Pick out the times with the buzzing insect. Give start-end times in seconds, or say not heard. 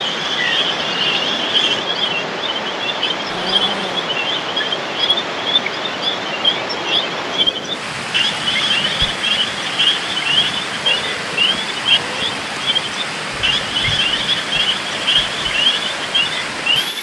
not heard.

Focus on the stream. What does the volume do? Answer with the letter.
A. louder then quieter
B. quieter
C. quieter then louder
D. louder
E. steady
E.